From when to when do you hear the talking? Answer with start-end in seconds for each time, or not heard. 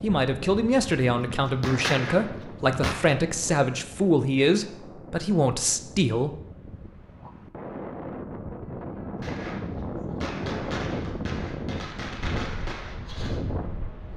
0.0-6.3.